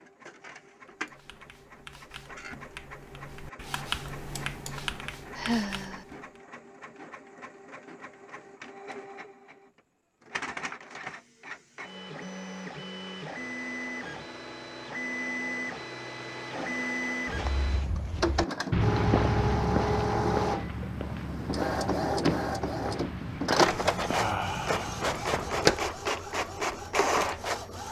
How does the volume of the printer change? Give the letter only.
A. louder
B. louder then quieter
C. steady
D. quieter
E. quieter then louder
A.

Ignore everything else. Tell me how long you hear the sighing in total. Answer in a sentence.
The sighing can be heard for 2 seconds in total.